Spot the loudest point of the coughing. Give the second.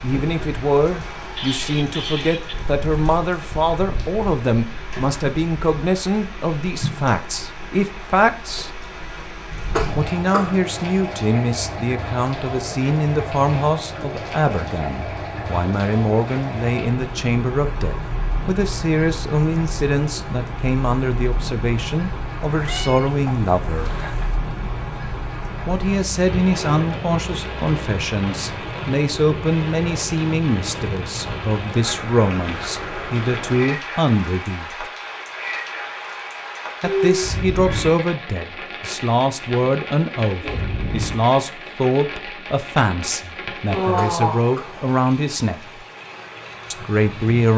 10 s.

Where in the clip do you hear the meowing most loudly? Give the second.
37 s.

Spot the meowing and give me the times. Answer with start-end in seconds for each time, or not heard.
0.9-2.5, 22.5-24.4, 36.8-38.0.